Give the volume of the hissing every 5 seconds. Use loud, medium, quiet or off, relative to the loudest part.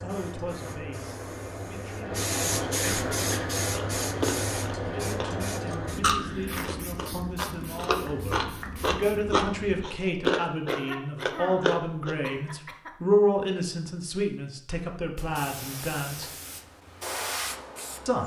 loud, medium, off, medium.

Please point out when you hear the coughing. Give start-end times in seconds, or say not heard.
2.8-3.5, 10.7-12.9.